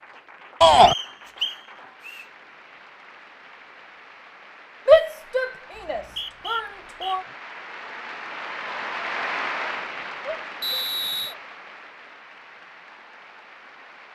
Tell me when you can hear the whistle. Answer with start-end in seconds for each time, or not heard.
0.8-2.2, 5.8-7.2, 10.6-11.3.